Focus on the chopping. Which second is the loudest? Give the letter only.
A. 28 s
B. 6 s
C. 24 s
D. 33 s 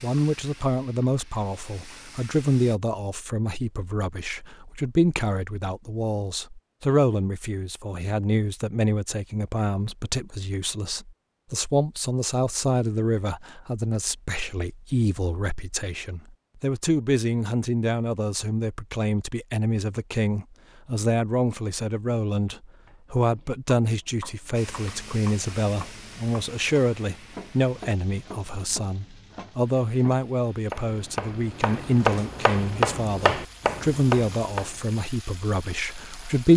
D.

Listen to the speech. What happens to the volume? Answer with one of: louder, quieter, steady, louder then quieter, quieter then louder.
steady.